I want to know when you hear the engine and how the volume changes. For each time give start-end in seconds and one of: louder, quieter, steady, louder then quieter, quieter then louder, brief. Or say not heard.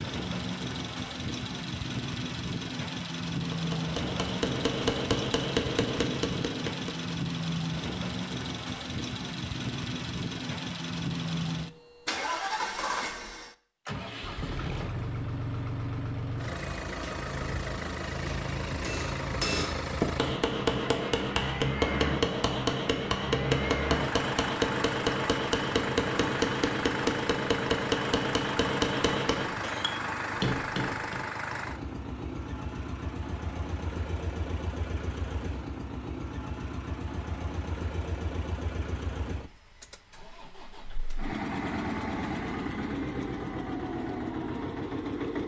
0.0-45.4 steady.